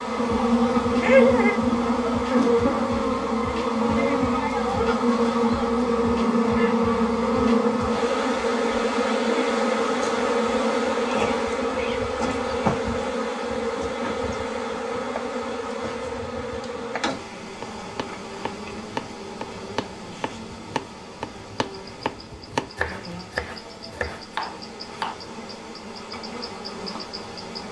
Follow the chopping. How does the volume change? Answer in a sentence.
The volume of the chopping goes up.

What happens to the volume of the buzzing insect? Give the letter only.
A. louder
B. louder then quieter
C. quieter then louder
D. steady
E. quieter
E.